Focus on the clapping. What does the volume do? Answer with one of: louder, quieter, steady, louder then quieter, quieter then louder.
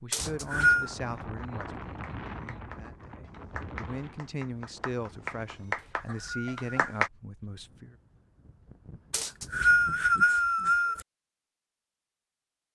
louder.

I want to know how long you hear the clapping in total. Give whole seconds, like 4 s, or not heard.
6 s.